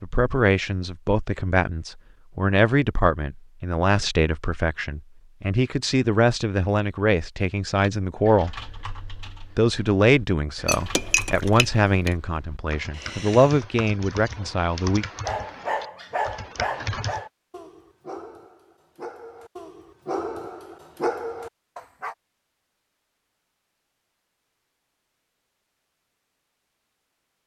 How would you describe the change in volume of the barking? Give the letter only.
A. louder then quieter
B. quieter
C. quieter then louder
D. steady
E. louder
C.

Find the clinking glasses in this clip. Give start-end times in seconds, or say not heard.
10.7-12.2.